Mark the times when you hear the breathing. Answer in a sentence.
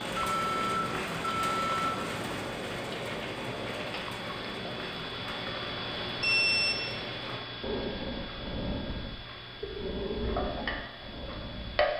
You can hear the breathing from 7.6 to 11.9 s.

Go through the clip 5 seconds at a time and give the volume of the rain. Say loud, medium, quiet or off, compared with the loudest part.
loud, medium, off.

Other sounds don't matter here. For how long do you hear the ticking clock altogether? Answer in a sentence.
The ticking clock can be heard for 12 seconds in total.